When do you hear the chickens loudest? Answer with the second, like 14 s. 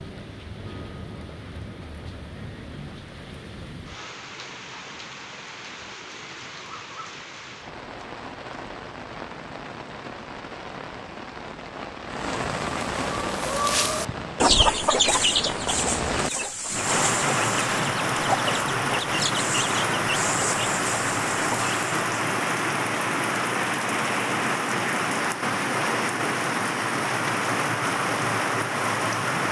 15 s.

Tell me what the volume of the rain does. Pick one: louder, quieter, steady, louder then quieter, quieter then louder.
louder.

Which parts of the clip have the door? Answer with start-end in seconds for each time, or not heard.
not heard.